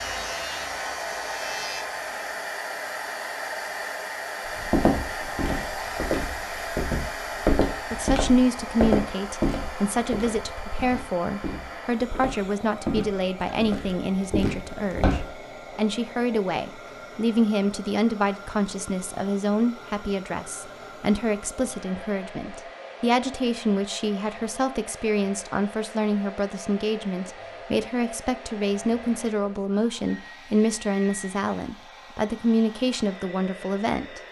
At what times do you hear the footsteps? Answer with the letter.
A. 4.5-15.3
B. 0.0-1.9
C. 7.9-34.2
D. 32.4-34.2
A.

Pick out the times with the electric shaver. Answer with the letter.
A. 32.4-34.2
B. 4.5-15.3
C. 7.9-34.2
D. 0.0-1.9
D.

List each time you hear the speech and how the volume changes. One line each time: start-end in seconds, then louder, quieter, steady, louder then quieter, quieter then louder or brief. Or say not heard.
7.9-34.2 steady.